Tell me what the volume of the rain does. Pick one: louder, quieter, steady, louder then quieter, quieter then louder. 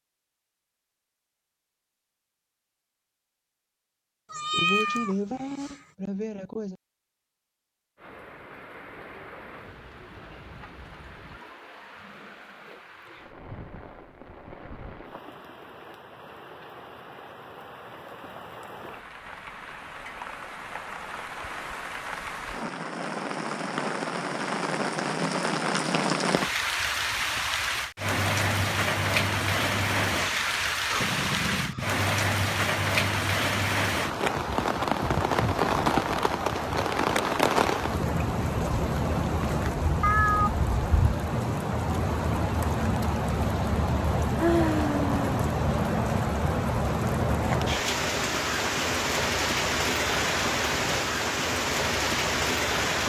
louder.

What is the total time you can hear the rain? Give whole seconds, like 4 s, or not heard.
45 s.